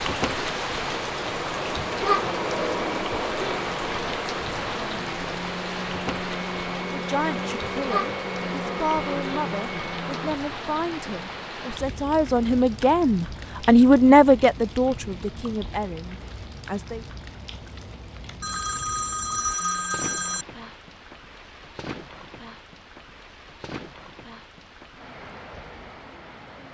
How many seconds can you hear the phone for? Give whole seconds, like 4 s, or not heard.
2 s.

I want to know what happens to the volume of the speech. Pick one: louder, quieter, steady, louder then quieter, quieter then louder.
louder then quieter.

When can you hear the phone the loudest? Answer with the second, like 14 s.
20 s.